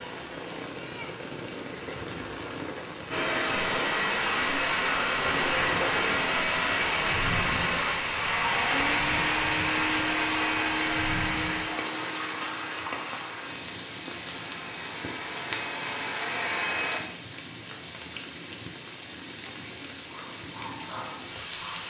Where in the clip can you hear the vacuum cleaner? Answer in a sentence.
The vacuum cleaner can be heard from 3.1 to 17.0 s.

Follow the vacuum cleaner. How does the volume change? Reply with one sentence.
The loudness of the vacuum cleaner goes down.